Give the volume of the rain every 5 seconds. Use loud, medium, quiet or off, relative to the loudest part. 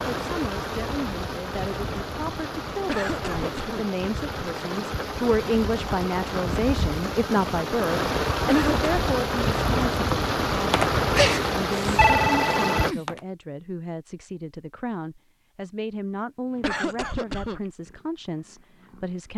medium, loud, loud, off.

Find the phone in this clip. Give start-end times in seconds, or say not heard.
10.7-13.2.